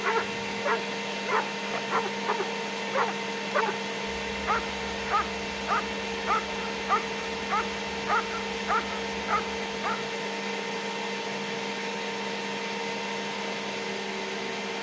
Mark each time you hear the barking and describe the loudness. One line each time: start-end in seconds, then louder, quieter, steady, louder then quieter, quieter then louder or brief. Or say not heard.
0.0-10.1 steady.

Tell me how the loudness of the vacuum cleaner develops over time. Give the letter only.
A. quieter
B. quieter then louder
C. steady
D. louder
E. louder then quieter
C.